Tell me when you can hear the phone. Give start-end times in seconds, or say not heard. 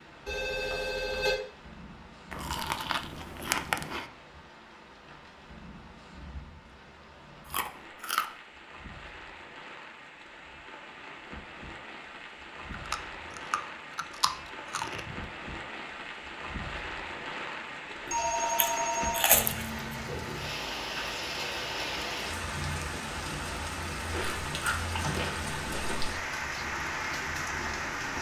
0.2-1.4, 17.9-19.4.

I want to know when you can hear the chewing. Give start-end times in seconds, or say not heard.
2.3-4.0, 7.5-8.2, 12.7-15.2, 18.1-19.7, 24.1-26.1.